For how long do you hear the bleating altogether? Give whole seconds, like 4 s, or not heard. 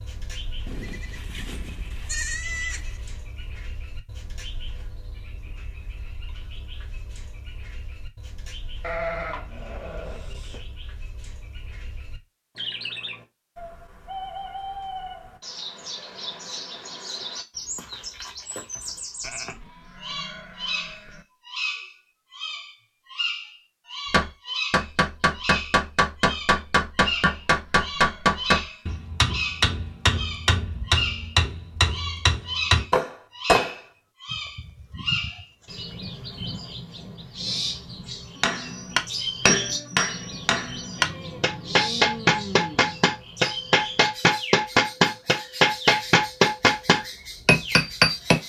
13 s.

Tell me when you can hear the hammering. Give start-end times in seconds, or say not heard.
24.1-33.8, 38.4-48.4.